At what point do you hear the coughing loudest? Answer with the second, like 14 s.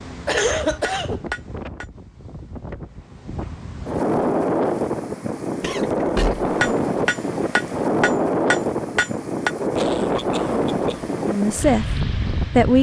1 s.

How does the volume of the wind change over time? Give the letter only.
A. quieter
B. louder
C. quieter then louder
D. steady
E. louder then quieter
B.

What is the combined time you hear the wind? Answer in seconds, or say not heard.
13 s.